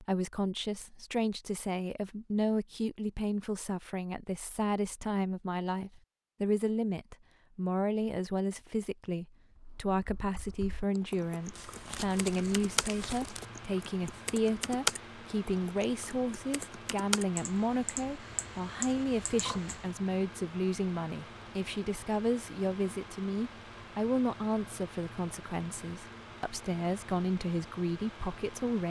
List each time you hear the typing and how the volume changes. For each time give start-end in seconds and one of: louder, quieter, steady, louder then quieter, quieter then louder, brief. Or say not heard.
9.5-19.9 louder then quieter.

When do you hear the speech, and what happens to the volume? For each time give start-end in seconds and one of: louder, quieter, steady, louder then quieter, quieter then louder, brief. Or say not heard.
0.0-28.8 steady.